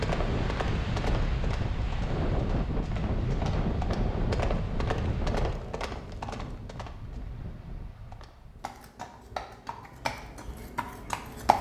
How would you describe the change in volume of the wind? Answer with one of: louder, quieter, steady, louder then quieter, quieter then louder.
quieter.